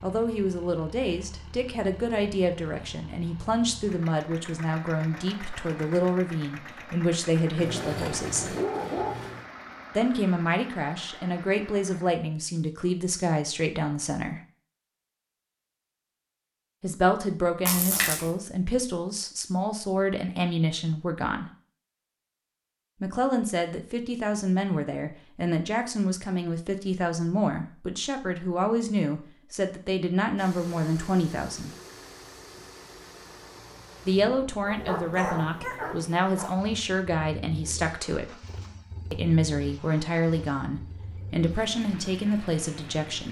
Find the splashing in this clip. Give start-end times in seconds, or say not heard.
17.6-18.3.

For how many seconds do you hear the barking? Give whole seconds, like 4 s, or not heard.
4 s.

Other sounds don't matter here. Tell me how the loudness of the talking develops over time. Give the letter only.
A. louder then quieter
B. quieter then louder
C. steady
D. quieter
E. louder
C.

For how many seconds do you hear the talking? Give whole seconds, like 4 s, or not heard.
35 s.